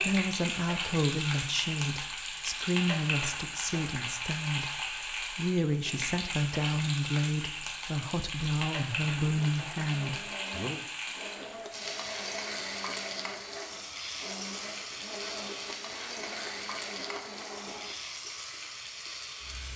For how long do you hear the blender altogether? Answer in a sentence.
The blender can be heard for 9 seconds in total.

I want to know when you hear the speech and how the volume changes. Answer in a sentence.
You can hear the speech from 0.0 to 10.8 s, at a steady volume.